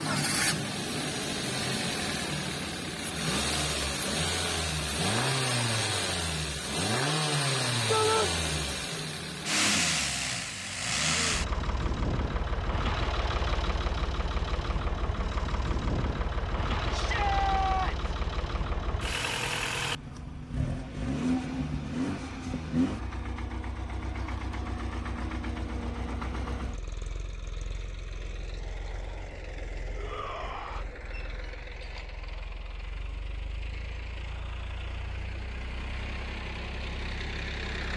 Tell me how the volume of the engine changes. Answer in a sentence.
The volume of the engine goes down.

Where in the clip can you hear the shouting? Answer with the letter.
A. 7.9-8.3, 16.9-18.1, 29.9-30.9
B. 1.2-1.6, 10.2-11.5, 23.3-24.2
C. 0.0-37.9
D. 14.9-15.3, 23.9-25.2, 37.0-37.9
A.